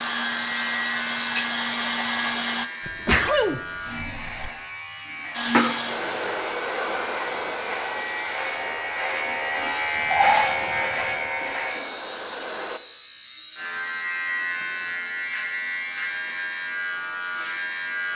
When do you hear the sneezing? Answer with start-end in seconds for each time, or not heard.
2.9-4.5, 9.9-11.3.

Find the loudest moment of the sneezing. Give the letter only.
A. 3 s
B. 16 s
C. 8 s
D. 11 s
A.